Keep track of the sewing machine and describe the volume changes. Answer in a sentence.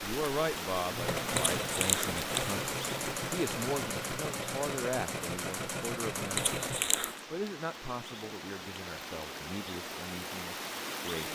The loudness of the sewing machine stays about the same.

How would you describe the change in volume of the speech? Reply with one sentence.
The volume of the speech goes down.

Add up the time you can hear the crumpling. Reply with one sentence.
The crumpling can be heard for 2 seconds in total.